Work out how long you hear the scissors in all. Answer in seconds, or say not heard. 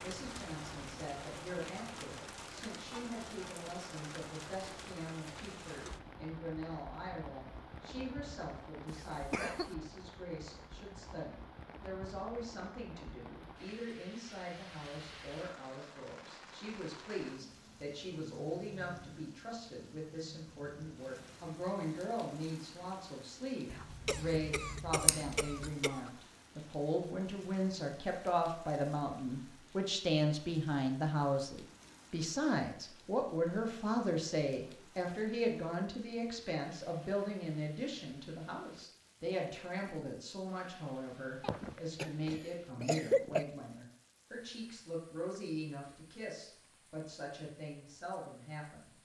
2 s.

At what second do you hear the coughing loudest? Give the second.
43 s.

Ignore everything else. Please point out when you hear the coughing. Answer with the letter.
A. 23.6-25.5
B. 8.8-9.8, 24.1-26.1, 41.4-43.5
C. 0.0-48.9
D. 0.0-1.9
B.